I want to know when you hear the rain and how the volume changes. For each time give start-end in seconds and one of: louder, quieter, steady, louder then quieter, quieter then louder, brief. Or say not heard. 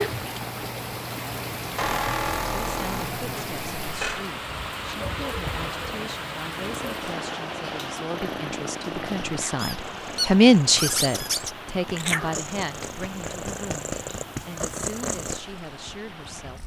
0.0-16.6 quieter.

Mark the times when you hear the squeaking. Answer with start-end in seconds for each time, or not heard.
1.8-4.2, 9.6-11.6.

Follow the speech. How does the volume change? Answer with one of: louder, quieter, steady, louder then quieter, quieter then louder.
louder then quieter.